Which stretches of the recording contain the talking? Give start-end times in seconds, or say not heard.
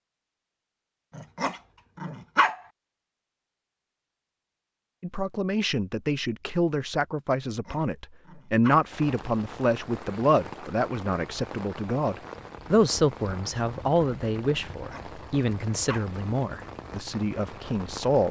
5.0-18.2.